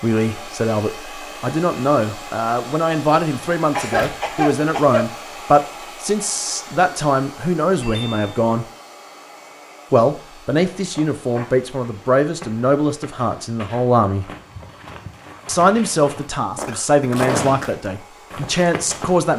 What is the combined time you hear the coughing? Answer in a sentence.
The coughing can be heard for 2 seconds in total.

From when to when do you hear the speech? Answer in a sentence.
You can hear the speech from 0.0 to 8.7 s, from 9.9 to 14.2 s and from 15.4 to 19.3 s.